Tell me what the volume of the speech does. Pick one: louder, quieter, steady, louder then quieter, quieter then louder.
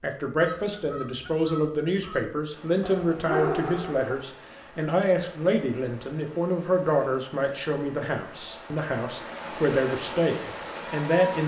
steady.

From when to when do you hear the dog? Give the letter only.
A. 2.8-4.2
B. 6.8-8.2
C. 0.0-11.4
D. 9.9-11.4
A.